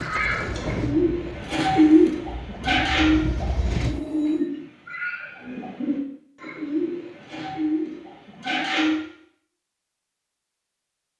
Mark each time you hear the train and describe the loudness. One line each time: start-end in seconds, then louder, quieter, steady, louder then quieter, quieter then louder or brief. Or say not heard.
0.0-4.3 quieter then louder.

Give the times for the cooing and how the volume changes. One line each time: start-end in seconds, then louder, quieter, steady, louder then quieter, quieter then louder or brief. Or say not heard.
0.0-9.1 quieter.